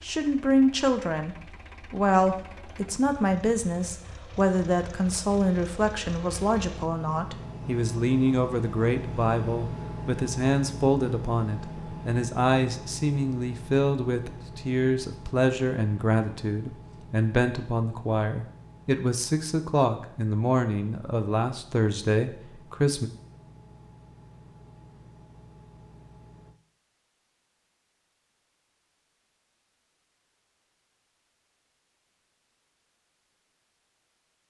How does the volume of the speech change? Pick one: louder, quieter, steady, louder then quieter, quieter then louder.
steady.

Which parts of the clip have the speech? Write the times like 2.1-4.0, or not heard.
0.0-23.1.